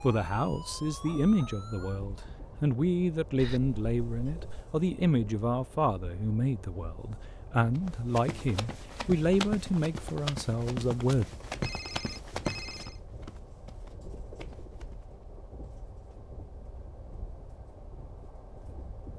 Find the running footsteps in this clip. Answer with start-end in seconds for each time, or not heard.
7.8-15.2.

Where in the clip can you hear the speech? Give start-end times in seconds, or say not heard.
0.0-11.2.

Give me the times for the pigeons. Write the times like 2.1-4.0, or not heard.
not heard.